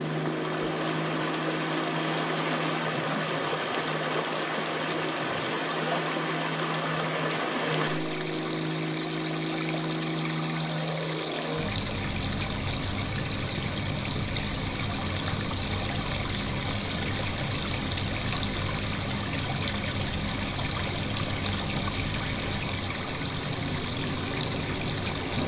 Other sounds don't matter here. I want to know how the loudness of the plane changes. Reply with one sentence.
The volume of the plane stays about the same.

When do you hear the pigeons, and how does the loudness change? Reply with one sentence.
The pigeons can't be heard in this clip.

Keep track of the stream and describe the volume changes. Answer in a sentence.
The loudness of the stream stays about the same.